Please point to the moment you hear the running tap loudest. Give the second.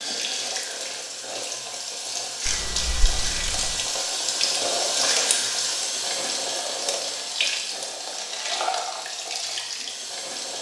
5 s.